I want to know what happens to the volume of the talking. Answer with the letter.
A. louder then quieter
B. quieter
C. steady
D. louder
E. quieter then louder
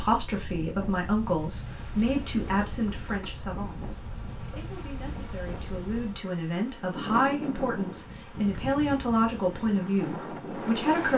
E.